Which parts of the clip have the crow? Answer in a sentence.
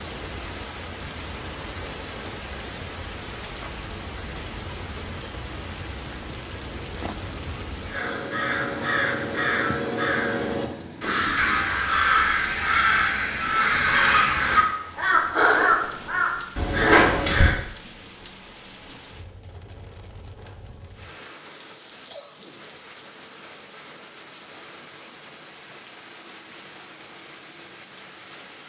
The crow can be heard from 7.9 to 17.6 s.